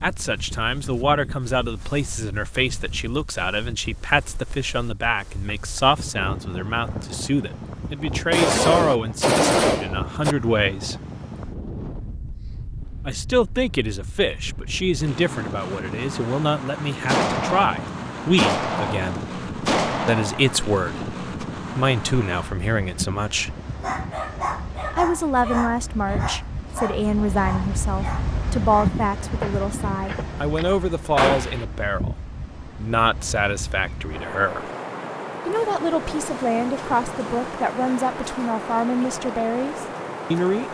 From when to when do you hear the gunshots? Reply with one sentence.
You can hear the gunshots from 8.3 to 10.3 s, from 17.1 to 21.4 s and from 31.1 to 31.6 s.